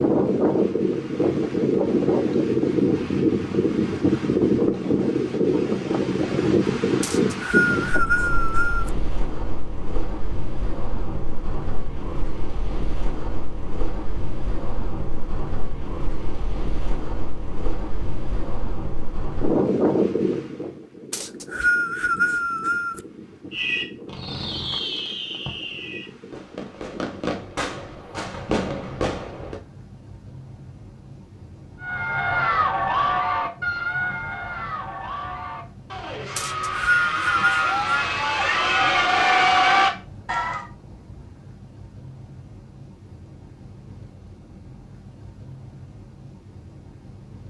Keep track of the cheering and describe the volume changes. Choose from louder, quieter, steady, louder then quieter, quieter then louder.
quieter then louder.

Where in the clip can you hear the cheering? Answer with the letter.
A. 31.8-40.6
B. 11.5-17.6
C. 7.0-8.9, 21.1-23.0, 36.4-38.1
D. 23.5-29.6
A.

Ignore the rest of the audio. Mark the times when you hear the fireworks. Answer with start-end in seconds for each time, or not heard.
23.5-29.6.